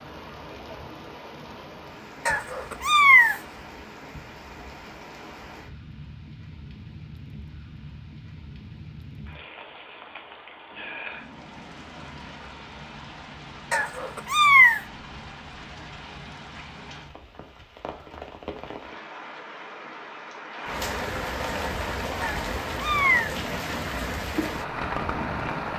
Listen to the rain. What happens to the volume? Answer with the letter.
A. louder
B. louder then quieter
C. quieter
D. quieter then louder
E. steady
A.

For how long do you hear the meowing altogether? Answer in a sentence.
You can hear the meowing for 3 seconds altogether.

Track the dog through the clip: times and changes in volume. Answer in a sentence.
You can't hear the dog here.